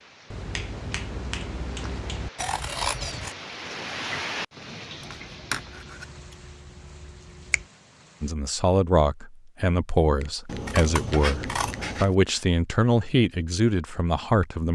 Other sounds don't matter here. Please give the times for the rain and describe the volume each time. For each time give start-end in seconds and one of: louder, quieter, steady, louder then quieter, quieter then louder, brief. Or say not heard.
0.0-8.3 louder then quieter.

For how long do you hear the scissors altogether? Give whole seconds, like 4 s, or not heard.
5 s.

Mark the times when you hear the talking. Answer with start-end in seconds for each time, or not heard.
8.2-14.6.